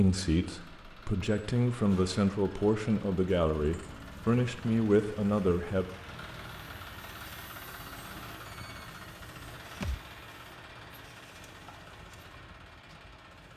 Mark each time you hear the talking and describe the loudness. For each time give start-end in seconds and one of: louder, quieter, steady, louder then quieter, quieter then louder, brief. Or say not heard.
0.0-5.8 louder.